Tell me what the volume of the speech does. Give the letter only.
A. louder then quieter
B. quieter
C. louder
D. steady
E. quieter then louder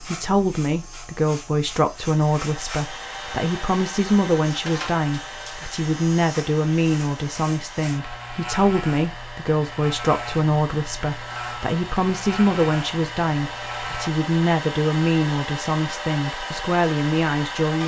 D.